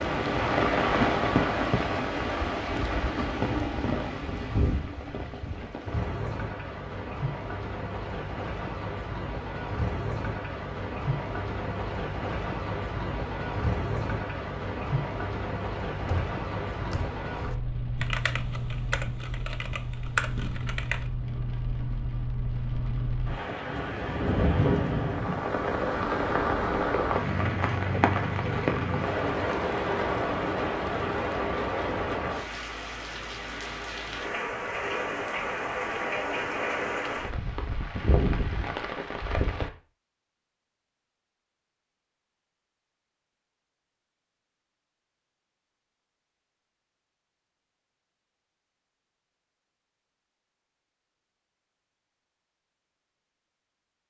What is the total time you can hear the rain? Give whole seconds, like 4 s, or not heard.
40 s.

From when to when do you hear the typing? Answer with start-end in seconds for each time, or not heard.
16.0-21.1.